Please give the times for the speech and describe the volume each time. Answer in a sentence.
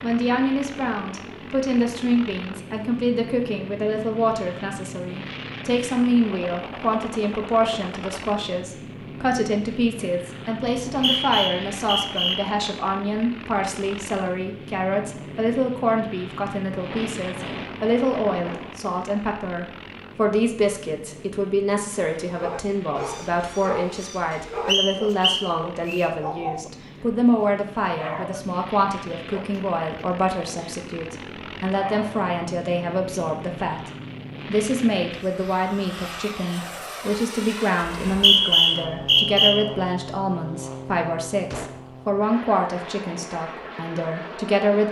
The speech can be heard from 0.0 to 44.8 s, at a steady volume.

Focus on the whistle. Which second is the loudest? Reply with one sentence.
The loudest moment of the whistle is at 38 seconds.